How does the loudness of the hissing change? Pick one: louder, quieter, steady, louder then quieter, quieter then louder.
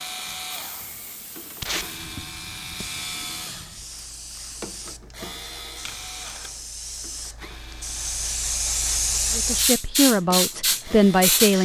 louder.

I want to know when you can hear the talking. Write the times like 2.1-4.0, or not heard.
9.3-11.5.